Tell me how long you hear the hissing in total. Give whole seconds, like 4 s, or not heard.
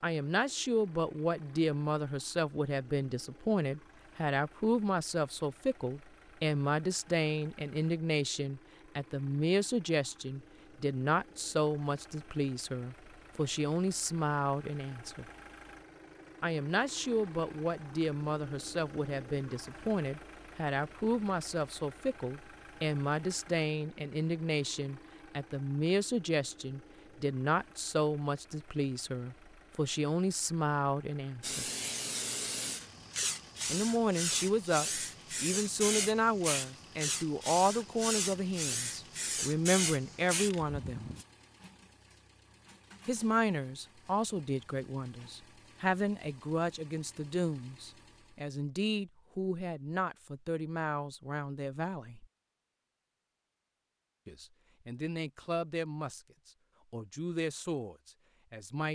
10 s.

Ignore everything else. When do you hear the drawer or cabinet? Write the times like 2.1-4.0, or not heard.
not heard.